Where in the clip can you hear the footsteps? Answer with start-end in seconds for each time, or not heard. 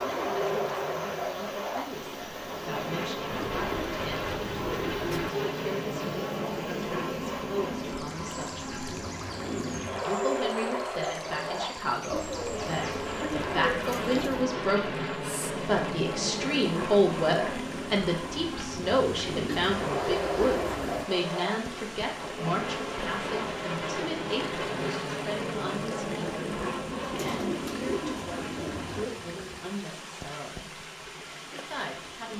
not heard.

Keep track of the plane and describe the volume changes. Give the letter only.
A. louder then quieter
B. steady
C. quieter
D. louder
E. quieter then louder
B.